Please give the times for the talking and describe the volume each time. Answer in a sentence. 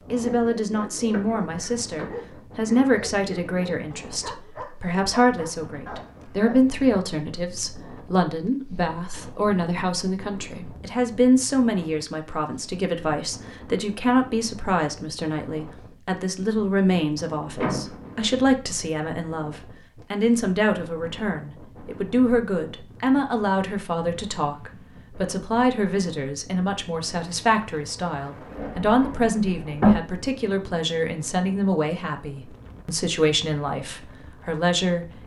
You can hear the talking from 0.1 to 35.1 s, at a steady volume.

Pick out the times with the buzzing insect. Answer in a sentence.
You can't hear the buzzing insect here.